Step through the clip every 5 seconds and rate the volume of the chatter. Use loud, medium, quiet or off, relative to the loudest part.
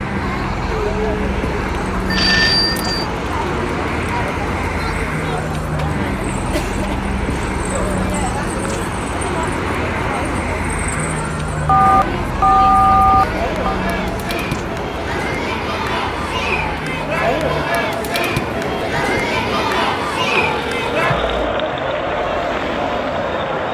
medium, medium, medium, loud, loud.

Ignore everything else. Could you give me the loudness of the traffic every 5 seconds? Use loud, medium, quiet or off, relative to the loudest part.
loud, loud, loud, medium, medium.